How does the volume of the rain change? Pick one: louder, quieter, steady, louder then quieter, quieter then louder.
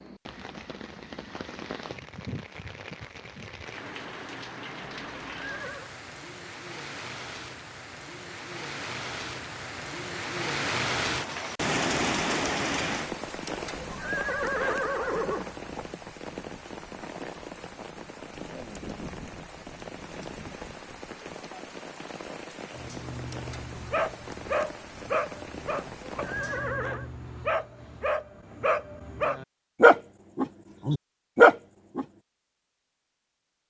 louder then quieter.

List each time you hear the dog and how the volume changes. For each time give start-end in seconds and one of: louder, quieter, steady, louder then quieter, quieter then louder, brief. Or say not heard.
22.7-32.0 louder.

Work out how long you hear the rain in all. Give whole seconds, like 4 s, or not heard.
27 s.